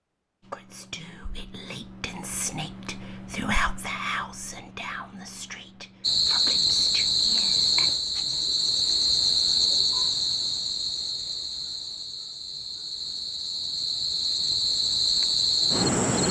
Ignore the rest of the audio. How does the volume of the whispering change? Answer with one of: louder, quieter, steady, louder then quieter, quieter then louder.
louder then quieter.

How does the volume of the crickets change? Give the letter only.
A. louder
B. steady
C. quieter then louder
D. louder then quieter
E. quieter
C.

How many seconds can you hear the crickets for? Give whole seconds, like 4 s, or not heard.
10 s.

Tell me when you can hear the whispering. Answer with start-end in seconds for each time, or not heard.
0.5-7.9.